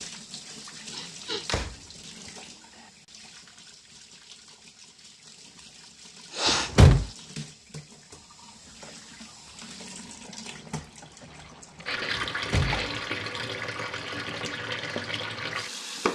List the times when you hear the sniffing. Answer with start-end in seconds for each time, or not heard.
0.9-1.5, 6.3-6.7, 11.4-12.9.